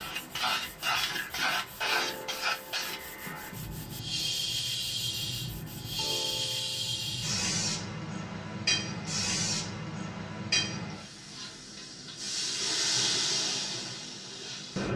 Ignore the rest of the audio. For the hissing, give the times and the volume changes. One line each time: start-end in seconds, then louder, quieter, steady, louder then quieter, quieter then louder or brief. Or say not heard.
0.0-14.9 steady.